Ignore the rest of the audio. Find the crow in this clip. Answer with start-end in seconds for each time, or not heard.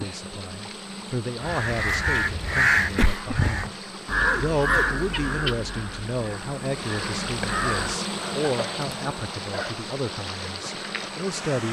1.4-8.0.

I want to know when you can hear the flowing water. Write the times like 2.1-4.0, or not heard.
0.0-11.6.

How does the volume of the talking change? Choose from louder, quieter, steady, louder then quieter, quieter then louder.
steady.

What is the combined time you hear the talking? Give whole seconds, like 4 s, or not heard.
11 s.